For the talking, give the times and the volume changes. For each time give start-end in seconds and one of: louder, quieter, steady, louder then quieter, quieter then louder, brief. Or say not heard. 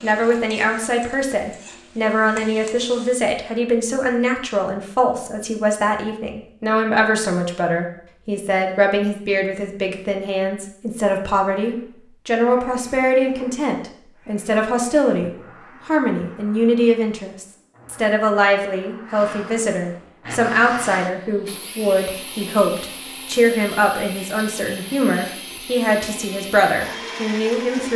0.0-27.9 steady.